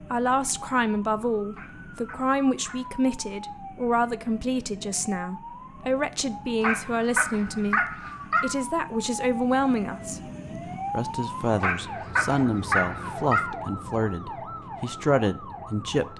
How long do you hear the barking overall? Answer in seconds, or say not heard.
5 s.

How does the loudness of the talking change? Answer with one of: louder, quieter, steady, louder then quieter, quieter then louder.
steady.